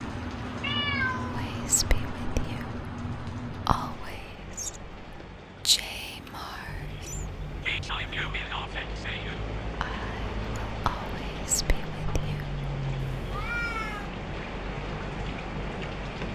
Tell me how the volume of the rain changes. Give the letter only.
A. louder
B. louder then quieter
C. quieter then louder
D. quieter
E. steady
C.